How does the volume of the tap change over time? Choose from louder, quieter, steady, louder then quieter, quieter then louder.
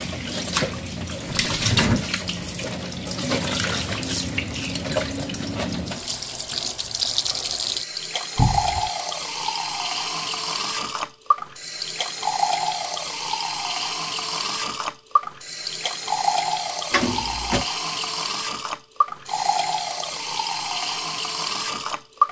steady.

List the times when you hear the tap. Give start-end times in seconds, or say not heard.
0.0-22.2.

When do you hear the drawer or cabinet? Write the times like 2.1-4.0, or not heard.
1.5-2.0, 8.3-8.9, 16.9-17.6.